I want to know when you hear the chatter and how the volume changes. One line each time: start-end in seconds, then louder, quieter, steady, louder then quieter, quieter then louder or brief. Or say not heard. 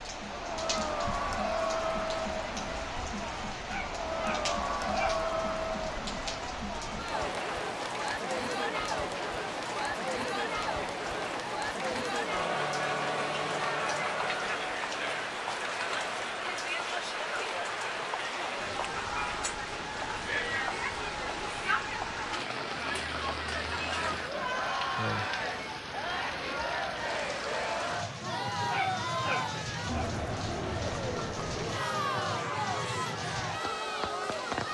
0.1-34.6 steady.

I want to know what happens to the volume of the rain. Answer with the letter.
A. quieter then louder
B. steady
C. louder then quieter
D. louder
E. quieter
B.